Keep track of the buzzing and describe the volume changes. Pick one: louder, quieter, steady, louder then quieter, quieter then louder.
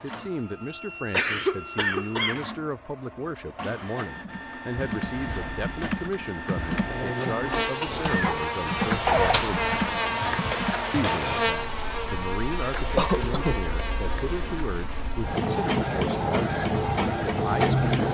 quieter.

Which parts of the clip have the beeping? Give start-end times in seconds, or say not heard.
not heard.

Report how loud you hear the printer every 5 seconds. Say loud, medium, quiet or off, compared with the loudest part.
quiet, medium, medium, loud.